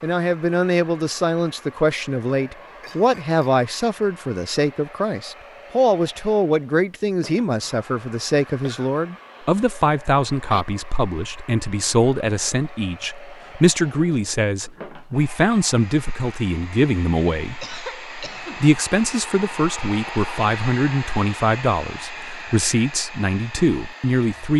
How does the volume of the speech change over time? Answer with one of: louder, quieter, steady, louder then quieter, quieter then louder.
steady.